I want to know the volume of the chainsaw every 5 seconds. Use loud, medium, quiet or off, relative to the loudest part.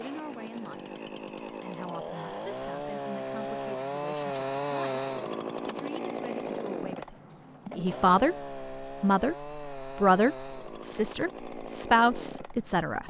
loud, loud, medium.